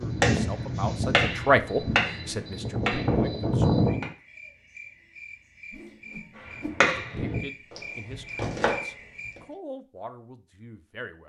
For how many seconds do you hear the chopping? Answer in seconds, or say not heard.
7 s.